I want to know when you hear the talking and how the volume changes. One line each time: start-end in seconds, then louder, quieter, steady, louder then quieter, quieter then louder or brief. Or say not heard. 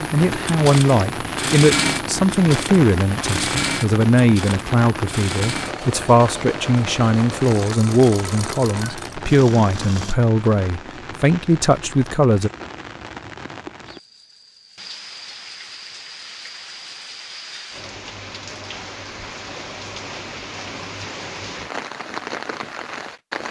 0.1-12.5 steady.